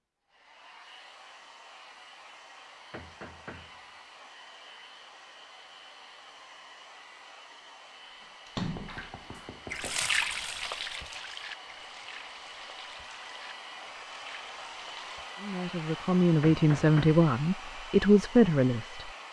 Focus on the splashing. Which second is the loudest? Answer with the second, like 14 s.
10 s.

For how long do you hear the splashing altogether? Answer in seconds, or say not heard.
7 s.